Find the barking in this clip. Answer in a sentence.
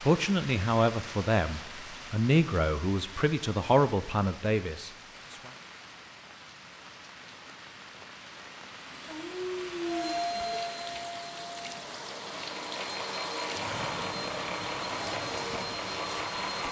You can hear the barking from 9.1 to 10.6 s.